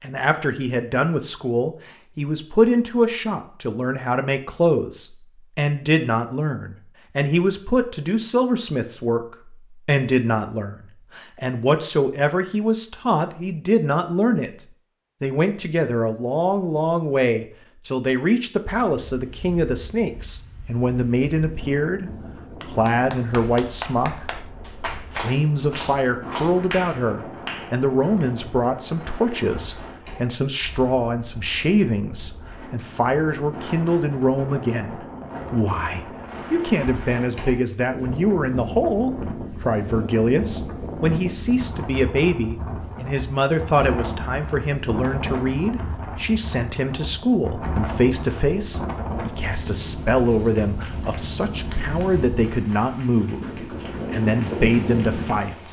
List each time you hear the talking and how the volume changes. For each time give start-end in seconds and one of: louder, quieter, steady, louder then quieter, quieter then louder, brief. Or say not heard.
0.0-55.6 steady.